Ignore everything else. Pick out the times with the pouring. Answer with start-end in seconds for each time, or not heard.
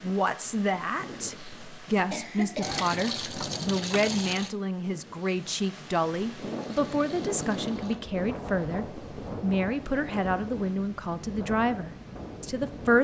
2.6-4.5, 6.6-8.0.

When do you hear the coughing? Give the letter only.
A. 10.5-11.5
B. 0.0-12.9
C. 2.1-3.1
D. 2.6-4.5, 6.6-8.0
C.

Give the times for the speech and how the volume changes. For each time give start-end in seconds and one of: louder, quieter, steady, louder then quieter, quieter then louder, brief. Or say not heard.
0.0-12.9 steady.